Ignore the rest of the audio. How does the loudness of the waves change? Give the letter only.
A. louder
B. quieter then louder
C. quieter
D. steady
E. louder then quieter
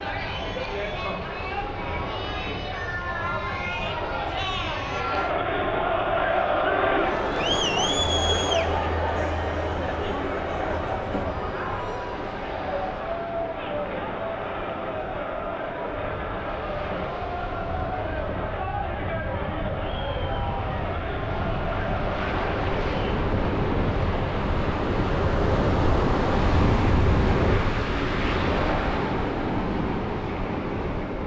A.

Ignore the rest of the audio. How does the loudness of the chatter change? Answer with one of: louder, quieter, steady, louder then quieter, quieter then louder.
louder then quieter.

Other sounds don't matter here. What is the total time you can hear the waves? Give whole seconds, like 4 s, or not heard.
31 s.